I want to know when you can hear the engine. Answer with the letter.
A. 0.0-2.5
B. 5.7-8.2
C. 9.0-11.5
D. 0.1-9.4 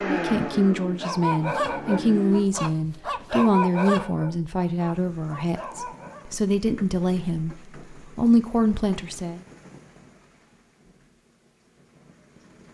A.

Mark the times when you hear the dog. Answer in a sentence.
You can hear the dog from 0.8 to 6.3 s.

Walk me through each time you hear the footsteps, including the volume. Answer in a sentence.
You can't hear the footsteps here.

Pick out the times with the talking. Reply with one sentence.
You can hear the talking from 0.1 to 9.4 s.